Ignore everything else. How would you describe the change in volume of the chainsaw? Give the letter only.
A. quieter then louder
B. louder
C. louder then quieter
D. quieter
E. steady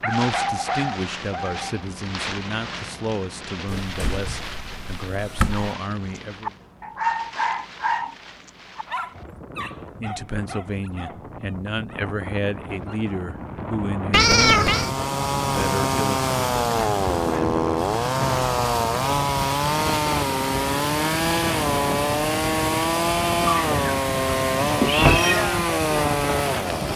E.